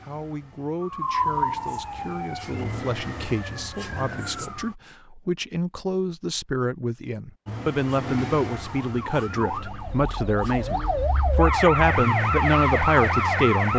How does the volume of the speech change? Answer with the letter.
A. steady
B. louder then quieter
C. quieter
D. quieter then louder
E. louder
E.